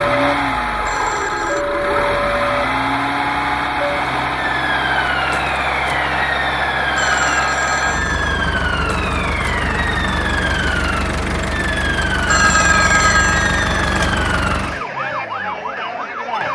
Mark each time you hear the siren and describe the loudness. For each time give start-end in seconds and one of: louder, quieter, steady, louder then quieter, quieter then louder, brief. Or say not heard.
0.0-16.5 steady.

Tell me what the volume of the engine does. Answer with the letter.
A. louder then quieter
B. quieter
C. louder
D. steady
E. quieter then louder
D.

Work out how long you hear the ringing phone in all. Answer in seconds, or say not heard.
4 s.